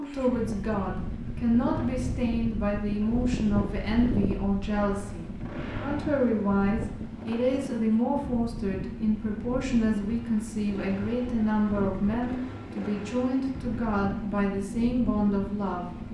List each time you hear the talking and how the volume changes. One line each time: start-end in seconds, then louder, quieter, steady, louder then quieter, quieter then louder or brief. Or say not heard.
0.0-15.8 steady.